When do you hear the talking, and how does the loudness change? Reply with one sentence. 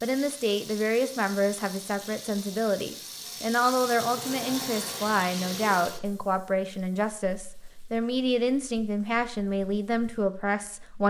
The talking can be heard from 0.0 to 11.0 s, at a steady volume.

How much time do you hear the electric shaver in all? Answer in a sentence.
You can't hear the electric shaver here.